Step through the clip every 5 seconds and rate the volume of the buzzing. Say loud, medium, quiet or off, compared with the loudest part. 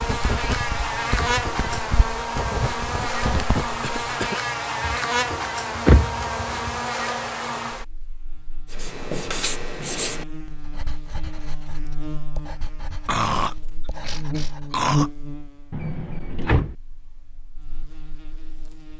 loud, loud, medium, medium.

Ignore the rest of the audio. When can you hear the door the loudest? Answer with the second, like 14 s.
6 s.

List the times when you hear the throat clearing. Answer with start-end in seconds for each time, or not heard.
3.8-4.3, 13.1-15.1.